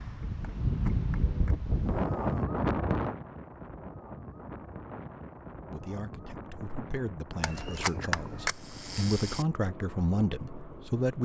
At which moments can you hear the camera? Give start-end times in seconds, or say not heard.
0.7-2.5, 7.4-9.4.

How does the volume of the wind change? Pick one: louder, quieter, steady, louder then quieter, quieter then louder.
quieter.